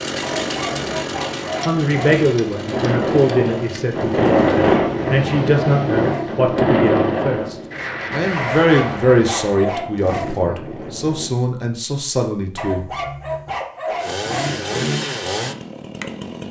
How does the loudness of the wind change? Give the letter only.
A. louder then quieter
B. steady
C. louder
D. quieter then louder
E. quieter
A.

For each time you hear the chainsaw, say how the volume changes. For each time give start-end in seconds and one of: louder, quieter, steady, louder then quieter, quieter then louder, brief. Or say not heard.
0.0-4.8 quieter
14.0-16.4 brief.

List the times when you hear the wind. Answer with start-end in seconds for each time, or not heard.
0.1-11.3.